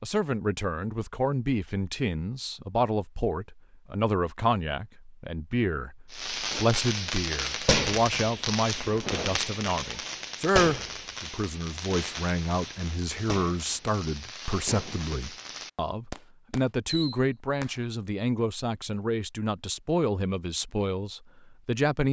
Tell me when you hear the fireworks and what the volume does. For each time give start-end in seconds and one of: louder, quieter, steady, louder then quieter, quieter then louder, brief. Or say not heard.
6.1-17.8 quieter.